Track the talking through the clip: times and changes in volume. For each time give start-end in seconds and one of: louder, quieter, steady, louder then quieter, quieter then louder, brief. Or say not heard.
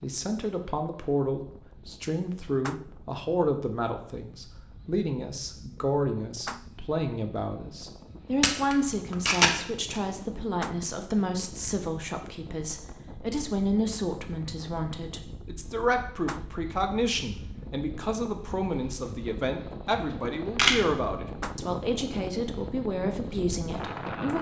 0.0-24.3 steady.